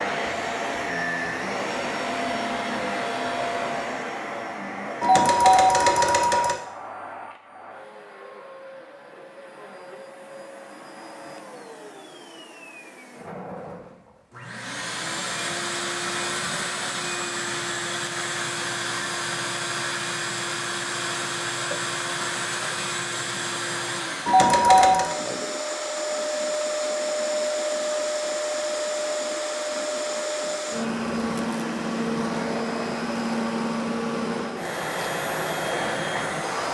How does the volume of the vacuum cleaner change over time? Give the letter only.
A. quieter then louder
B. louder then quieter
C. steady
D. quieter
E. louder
A.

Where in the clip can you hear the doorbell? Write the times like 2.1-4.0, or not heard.
5.0-6.6, 24.2-25.1.